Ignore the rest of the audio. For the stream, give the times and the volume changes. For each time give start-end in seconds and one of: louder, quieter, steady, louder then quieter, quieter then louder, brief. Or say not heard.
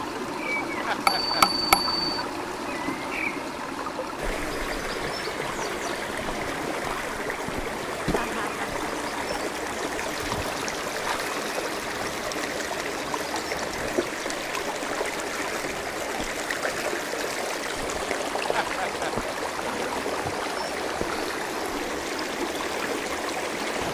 0.0-23.8 steady.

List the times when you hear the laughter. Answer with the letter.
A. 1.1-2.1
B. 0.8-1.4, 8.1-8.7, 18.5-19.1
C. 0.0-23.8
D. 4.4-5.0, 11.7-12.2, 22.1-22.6
B.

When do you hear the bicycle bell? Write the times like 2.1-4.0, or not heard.
1.1-2.1.